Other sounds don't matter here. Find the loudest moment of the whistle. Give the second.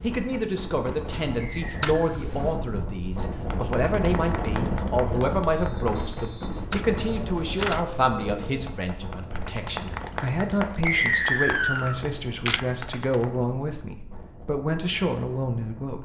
11 s.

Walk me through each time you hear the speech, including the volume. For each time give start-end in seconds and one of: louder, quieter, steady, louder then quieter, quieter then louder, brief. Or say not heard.
0.0-15.9 steady.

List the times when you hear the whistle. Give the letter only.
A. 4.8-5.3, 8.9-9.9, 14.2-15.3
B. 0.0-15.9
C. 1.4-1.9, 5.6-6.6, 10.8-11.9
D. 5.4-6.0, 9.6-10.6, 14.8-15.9
C.